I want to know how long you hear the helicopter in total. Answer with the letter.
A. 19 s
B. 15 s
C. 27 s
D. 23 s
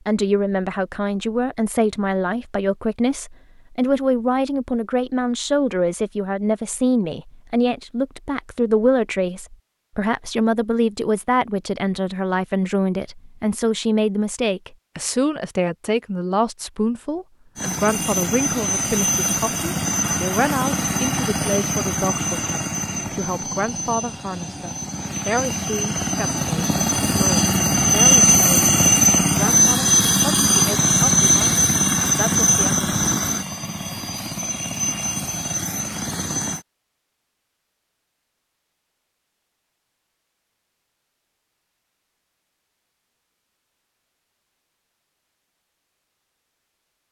A.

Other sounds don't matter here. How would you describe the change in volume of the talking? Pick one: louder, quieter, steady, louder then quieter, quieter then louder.
quieter.